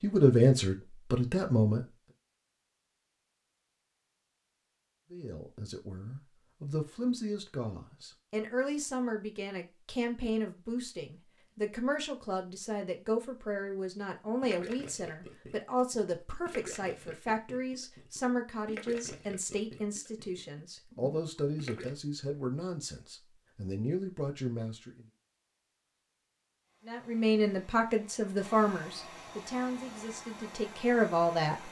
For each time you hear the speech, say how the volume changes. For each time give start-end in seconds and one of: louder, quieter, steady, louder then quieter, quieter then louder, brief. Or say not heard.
0.0-1.8 brief
5.1-25.1 steady
26.9-31.6 quieter then louder.